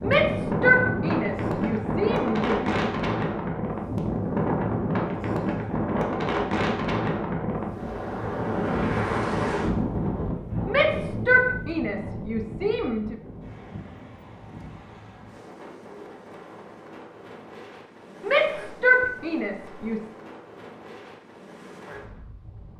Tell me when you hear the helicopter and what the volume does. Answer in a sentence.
You can't hear the helicopter here.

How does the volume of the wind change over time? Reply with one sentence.
The loudness of the wind goes down.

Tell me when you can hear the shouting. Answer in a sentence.
You can hear the shouting from 0.0 to 2.7 s, from 10.7 to 13.2 s and from 18.2 to 20.1 s.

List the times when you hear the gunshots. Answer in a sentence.
You can't hear the gunshots here.